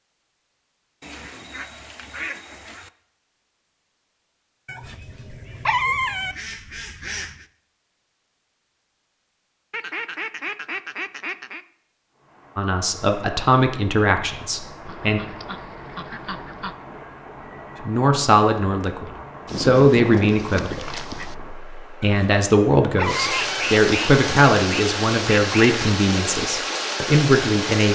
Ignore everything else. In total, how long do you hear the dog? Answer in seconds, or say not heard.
3 s.